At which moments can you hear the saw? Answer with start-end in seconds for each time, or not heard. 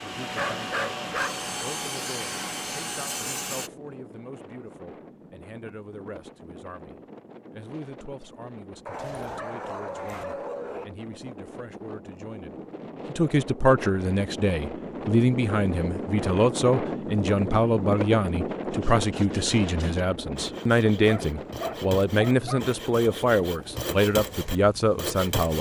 0.0-3.7, 18.7-25.5.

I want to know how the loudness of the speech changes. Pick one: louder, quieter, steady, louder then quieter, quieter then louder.
louder.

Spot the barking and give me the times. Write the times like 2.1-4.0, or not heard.
0.2-1.5, 8.8-10.8, 21.1-22.6.